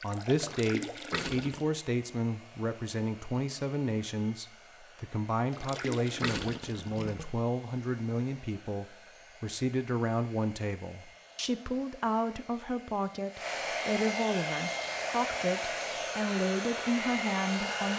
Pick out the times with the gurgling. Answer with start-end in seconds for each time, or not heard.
0.0-1.6, 5.5-7.2.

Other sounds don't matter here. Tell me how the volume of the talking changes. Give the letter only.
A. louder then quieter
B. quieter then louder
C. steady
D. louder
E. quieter
C.